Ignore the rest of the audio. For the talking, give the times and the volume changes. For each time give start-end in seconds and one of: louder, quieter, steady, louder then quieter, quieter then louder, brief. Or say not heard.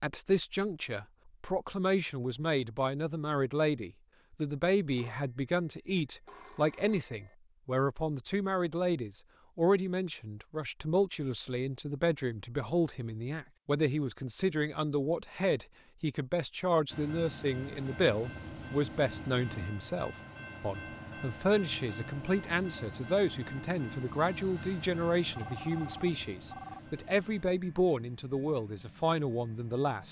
0.0-30.0 steady.